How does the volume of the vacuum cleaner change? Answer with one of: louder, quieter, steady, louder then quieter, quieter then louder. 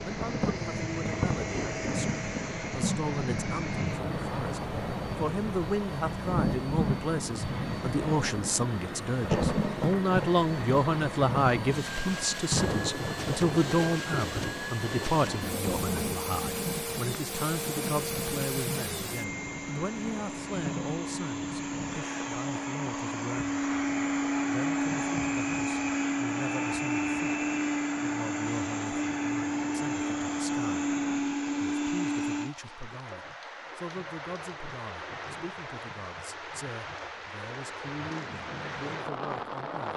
louder.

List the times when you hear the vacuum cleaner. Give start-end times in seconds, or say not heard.
0.0-32.5.